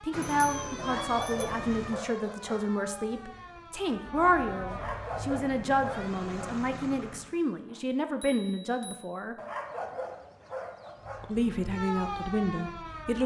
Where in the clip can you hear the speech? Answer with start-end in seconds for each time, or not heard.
0.0-9.3, 11.2-13.2.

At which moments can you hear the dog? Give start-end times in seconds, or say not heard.
0.8-2.7, 4.7-6.6, 9.3-11.3.